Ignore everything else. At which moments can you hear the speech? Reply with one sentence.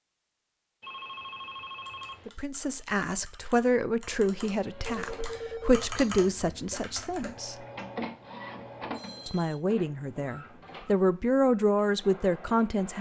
You can hear the speech from 2.2 to 7.5 s and from 9.2 to 12.9 s.